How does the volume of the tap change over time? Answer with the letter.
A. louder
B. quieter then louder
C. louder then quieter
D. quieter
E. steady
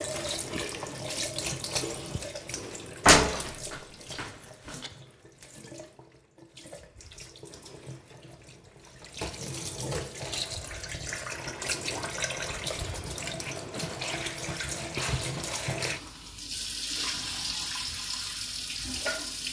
B.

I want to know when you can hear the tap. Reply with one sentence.
The tap can be heard from 0.0 to 19.4 s.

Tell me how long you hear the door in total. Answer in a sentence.
The door can be heard for 2 seconds in total.